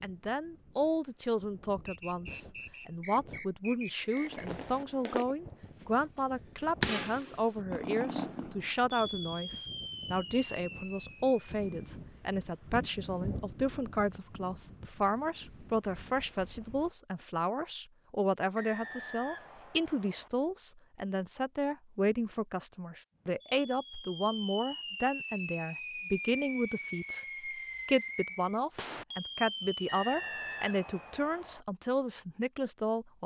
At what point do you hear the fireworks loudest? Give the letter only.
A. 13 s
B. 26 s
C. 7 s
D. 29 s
C.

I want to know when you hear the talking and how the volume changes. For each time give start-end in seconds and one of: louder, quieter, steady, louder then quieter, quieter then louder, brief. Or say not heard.
0.0-33.2 steady.